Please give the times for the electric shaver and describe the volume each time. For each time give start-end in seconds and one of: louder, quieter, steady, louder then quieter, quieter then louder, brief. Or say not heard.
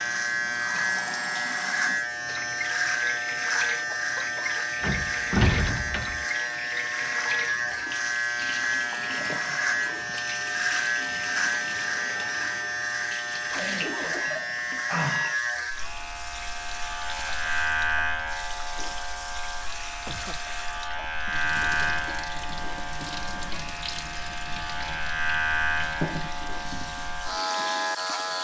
0.0-28.4 steady.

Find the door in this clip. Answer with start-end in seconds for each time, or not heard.
4.8-6.2.